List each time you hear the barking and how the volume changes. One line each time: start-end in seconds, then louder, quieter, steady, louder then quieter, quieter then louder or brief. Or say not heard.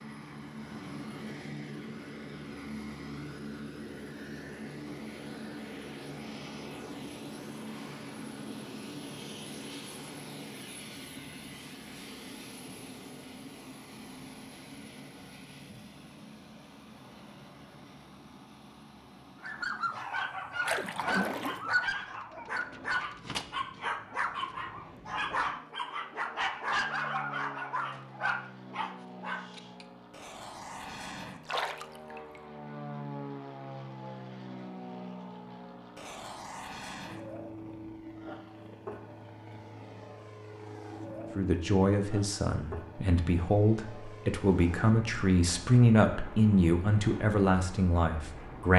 19.4-29.9 steady.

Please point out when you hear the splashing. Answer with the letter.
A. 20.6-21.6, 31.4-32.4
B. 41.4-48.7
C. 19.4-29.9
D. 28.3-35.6
A.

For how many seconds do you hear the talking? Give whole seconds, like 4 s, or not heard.
7 s.